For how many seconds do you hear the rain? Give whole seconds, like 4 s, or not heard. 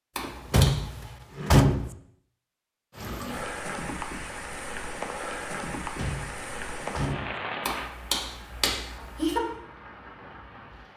8 s.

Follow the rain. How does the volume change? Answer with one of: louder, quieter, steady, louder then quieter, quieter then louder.
quieter.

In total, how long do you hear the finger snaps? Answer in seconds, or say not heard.
3 s.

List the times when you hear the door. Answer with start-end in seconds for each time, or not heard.
0.2-1.9, 5.7-7.3.